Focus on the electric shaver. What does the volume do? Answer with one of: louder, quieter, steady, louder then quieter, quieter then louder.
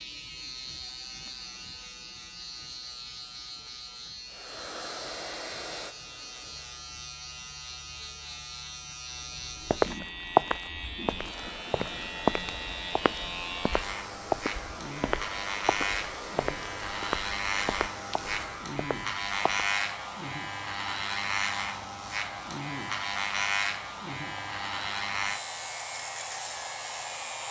louder.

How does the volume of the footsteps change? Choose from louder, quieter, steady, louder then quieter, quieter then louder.
quieter.